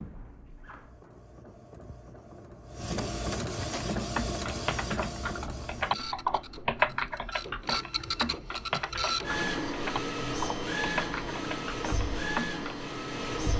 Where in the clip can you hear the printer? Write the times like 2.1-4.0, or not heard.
0.0-13.5.